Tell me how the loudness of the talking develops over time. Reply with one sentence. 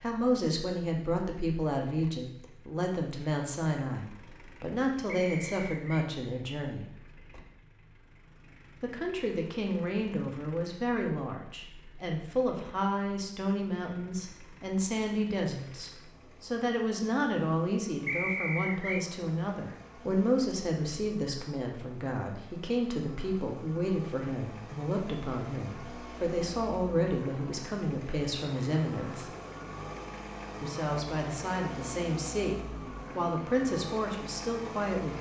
The loudness of the talking stays about the same.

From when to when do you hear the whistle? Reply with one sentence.
The whistle can be heard from 5.0 to 6.1 s and from 18.1 to 19.1 s.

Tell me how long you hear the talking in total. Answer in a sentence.
The talking can be heard for 32 seconds in total.